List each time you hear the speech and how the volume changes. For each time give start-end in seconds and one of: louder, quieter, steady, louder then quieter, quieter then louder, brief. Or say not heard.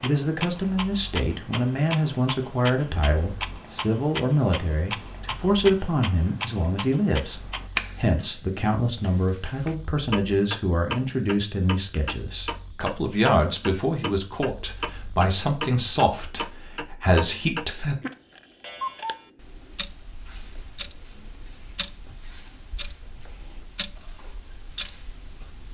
0.0-17.9 steady.